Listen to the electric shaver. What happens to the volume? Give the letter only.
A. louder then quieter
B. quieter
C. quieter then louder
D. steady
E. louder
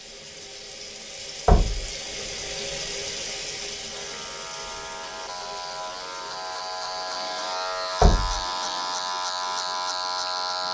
E.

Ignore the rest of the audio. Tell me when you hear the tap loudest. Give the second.
3 s.